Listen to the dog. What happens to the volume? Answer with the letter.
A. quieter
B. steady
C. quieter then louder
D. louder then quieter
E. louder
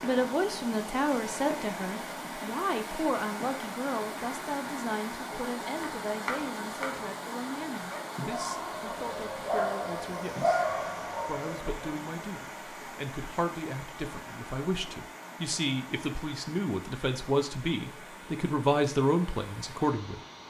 D.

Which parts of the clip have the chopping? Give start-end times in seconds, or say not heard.
5.8-7.1.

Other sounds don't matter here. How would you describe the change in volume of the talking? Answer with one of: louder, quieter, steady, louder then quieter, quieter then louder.
quieter then louder.